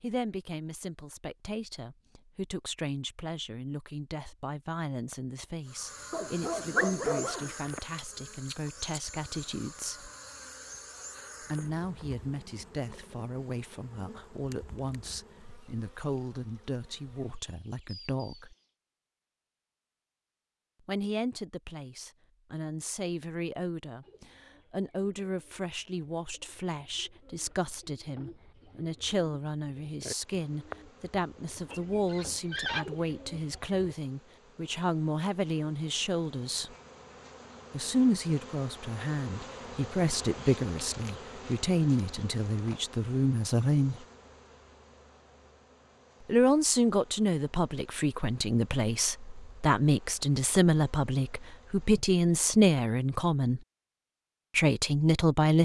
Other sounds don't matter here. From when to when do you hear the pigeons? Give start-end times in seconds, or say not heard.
24.0-34.0.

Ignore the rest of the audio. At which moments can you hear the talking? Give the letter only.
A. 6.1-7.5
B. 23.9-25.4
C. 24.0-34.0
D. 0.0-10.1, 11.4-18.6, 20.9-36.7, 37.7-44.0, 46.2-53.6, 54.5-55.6
D.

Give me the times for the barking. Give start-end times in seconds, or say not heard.
6.1-7.5.